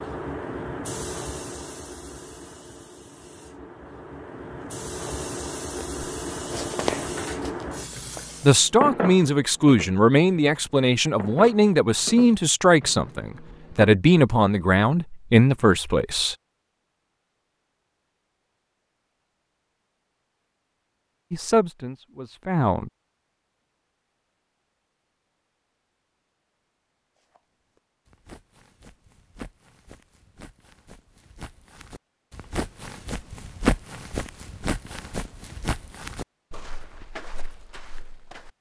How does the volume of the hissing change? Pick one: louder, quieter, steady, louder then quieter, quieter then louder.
quieter then louder.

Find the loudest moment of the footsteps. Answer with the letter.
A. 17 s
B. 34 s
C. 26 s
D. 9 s
B.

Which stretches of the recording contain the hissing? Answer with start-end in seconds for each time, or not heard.
0.0-8.7.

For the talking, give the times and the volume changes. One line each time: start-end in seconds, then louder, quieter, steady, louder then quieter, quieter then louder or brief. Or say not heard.
8.4-16.4 steady
21.3-22.9 brief.